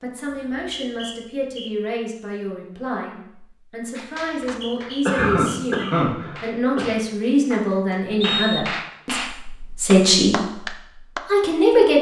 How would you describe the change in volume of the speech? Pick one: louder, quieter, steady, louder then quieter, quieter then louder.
louder.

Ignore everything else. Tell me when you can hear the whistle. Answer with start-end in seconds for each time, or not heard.
0.3-1.7, 4.2-5.8, 8.2-8.8.